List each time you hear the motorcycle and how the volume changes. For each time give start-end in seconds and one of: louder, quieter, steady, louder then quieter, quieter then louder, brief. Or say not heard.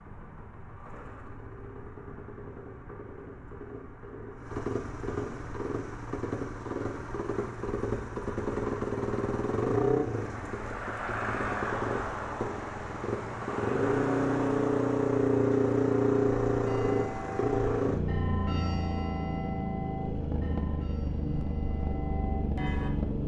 0.0-23.2 louder then quieter.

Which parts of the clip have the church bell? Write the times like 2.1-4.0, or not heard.
16.6-22.9.